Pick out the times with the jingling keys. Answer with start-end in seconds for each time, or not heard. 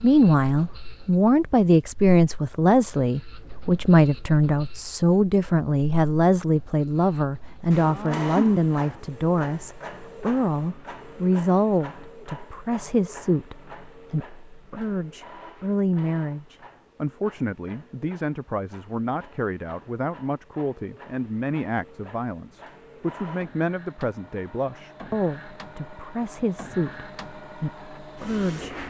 not heard.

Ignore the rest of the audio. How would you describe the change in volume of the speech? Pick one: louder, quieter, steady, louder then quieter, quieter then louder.
quieter.